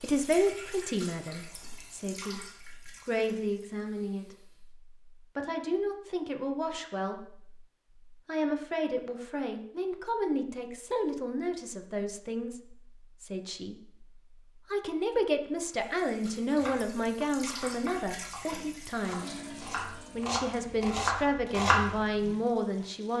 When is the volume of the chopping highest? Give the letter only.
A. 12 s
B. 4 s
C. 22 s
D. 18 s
C.